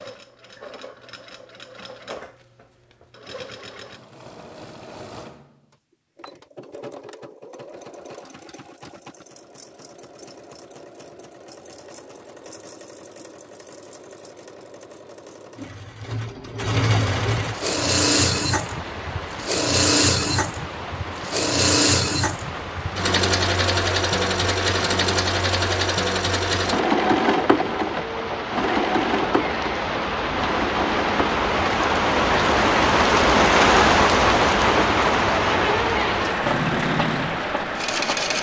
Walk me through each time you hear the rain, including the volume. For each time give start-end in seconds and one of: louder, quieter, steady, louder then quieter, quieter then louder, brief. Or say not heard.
17.3-38.3 louder.